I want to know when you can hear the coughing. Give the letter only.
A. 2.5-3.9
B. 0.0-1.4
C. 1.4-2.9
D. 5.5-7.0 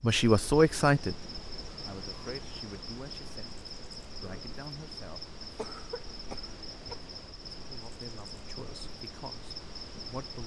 D.